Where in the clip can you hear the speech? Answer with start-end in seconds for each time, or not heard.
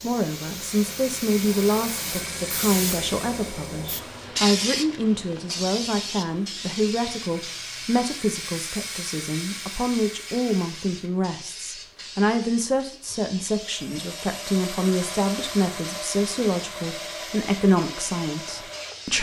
0.0-19.1.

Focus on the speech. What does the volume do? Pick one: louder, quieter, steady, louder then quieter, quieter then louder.
steady.